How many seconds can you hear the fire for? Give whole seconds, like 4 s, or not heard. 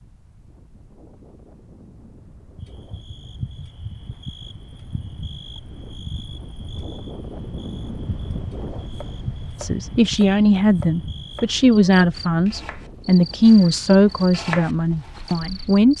not heard.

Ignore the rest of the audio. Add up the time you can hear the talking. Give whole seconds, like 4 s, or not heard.
6 s.